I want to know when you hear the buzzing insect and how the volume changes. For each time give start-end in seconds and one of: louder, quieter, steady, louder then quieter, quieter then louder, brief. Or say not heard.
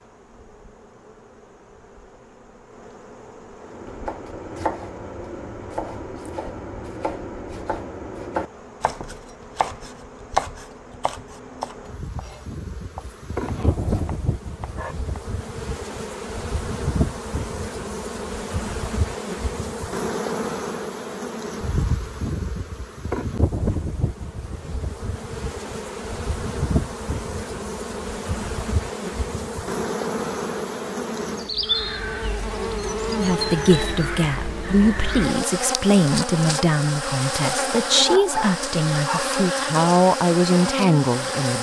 0.0-41.5 louder.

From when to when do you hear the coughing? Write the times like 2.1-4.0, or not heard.
not heard.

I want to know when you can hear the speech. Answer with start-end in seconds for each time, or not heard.
33.1-41.5.